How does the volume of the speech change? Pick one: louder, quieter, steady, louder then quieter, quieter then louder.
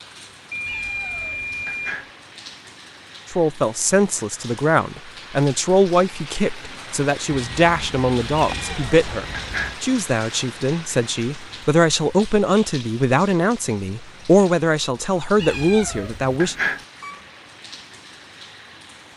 steady.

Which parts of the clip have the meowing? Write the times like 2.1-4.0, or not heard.
0.7-2.1, 8.5-9.8, 15.3-16.9.